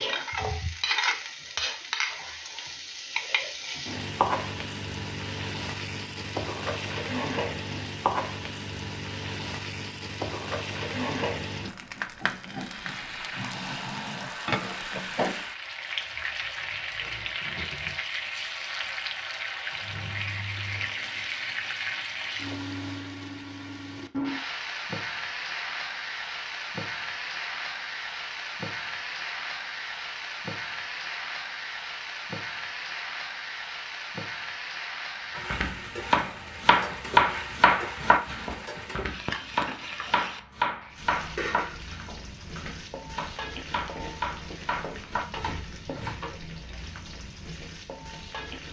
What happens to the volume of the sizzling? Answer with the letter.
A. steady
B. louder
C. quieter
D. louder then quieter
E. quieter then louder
C.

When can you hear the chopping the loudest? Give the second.
37 s.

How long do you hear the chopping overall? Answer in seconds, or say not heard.
11 s.